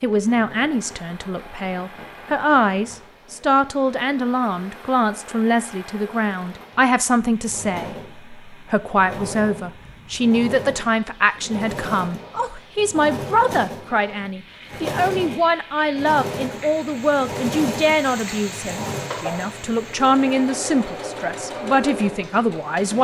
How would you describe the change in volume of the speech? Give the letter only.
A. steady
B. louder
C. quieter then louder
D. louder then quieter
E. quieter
A.